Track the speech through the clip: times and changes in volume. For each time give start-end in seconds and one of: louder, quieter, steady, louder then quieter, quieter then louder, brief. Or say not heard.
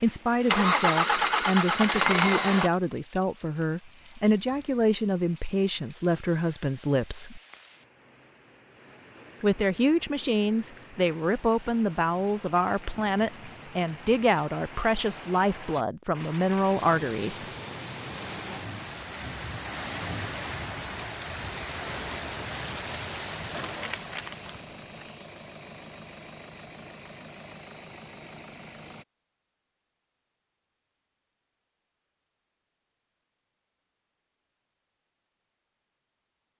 0.0-7.4 steady
9.4-17.4 steady.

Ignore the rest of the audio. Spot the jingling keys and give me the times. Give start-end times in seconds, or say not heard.
23.4-25.1.